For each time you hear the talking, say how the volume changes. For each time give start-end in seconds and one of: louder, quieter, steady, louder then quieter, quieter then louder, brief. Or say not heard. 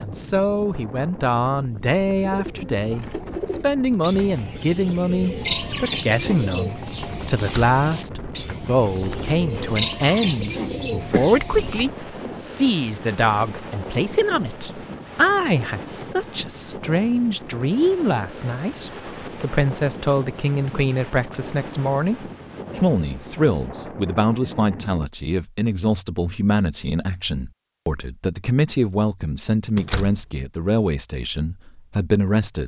0.0-32.6 steady.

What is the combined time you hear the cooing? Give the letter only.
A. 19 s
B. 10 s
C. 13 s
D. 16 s
B.